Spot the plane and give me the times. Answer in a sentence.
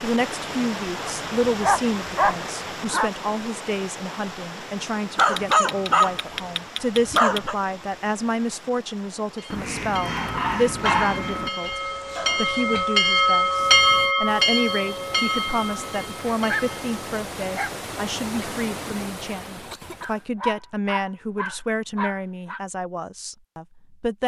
You can't hear the plane here.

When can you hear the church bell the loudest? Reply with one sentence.
The volume of the church bell peaks at 14 seconds.